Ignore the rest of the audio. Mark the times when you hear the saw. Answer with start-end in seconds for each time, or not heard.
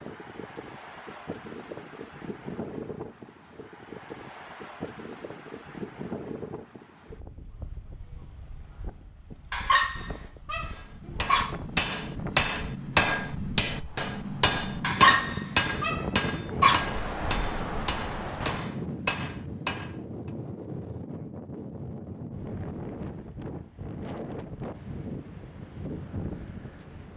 not heard.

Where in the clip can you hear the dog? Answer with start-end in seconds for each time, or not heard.
9.5-11.4, 14.8-16.8.